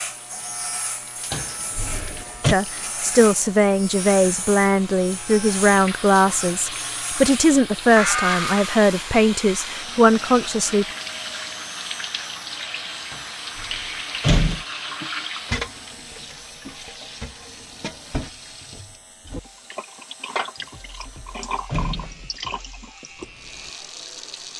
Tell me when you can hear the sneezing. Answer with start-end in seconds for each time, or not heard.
8.0-8.7.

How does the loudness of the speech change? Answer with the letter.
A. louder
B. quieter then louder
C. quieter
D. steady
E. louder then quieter
D.